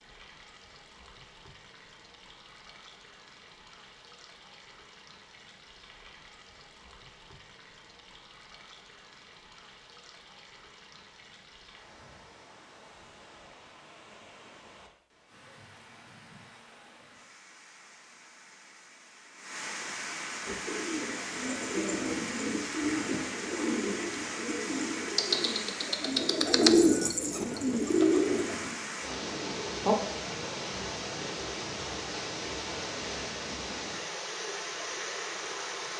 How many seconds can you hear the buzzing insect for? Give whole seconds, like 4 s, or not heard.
not heard.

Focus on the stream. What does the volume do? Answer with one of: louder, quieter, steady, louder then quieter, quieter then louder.
louder.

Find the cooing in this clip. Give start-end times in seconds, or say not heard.
20.4-29.9.